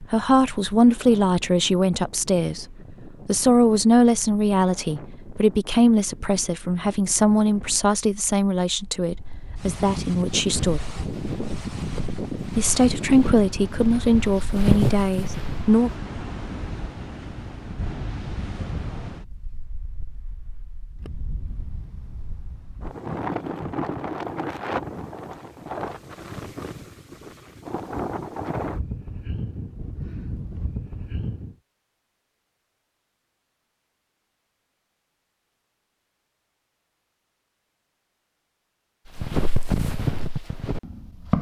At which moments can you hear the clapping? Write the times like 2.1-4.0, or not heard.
not heard.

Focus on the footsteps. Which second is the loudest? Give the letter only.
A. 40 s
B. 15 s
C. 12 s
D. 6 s
B.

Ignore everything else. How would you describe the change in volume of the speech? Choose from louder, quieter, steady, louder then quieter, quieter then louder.
steady.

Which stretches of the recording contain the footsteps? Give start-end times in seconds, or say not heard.
10.3-15.8, 39.0-41.3.